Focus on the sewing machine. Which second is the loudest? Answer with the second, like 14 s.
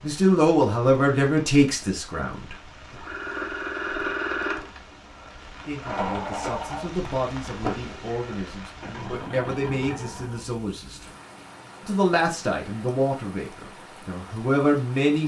4 s.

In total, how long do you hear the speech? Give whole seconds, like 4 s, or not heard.
11 s.